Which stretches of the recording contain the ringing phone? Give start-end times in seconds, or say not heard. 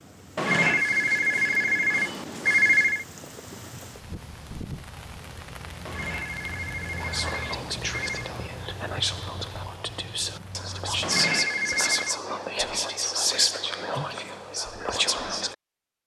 0.3-3.0, 5.8-8.3, 11.0-12.2.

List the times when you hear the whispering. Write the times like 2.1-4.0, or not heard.
7.0-15.6.